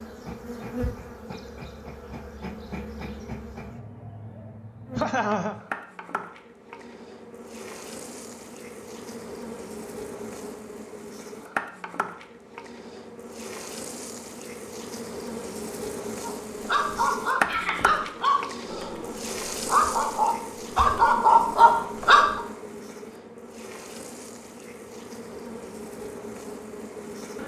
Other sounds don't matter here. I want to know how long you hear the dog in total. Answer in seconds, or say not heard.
6 s.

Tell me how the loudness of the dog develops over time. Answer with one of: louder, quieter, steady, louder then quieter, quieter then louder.
louder.